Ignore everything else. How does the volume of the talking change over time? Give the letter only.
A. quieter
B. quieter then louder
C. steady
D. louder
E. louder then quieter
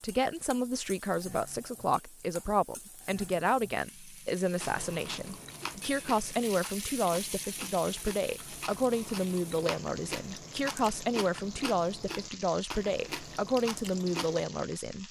C.